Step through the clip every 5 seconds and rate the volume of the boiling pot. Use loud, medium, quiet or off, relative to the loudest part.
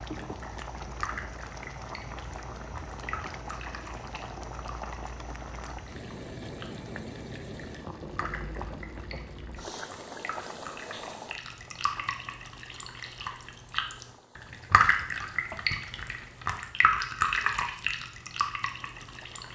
loud, loud, medium, quiet.